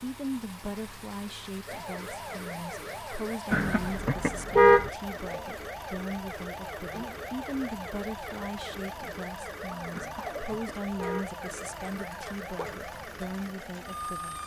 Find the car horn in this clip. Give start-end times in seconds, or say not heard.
3.5-4.9, 9.9-11.3.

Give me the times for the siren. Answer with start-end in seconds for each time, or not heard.
1.6-14.4.